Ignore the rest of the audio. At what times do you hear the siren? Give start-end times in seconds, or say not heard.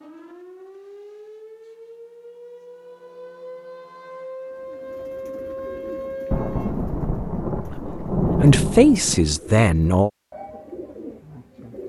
0.0-6.8.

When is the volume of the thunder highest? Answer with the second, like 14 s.
8 s.